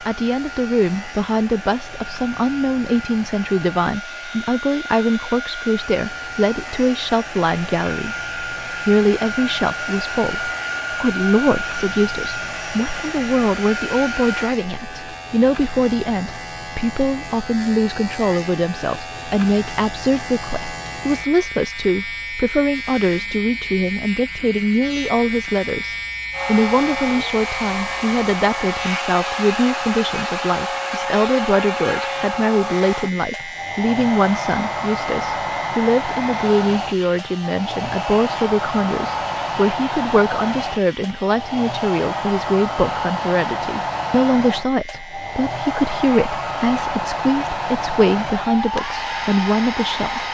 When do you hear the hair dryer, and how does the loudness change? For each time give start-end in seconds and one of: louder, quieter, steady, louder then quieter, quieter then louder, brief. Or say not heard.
0.0-14.6 louder
26.3-50.3 steady.